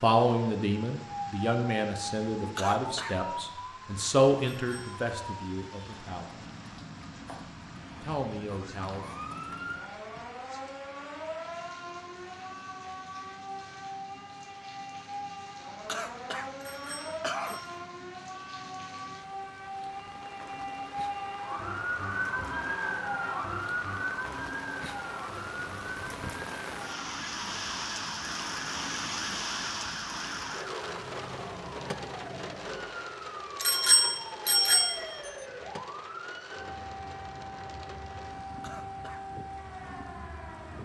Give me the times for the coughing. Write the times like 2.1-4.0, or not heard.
2.5-3.2, 15.8-17.6, 38.6-39.2.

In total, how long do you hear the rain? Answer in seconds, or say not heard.
41 s.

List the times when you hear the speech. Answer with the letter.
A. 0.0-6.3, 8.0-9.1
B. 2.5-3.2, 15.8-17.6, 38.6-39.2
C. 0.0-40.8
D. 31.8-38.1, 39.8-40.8
A.